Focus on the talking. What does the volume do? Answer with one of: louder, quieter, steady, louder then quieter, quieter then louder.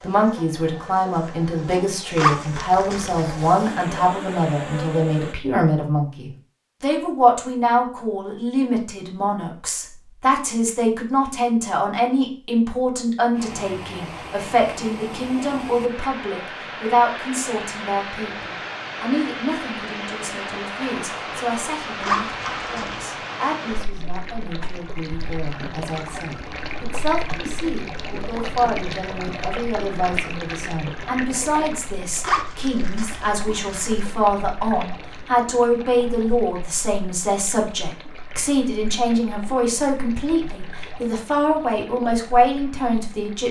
quieter then louder.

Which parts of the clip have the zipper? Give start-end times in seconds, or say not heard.
2.1-3.5, 22.0-23.1, 32.2-34.0.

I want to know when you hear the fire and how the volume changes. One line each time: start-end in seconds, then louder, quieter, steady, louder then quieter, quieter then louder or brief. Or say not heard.
not heard.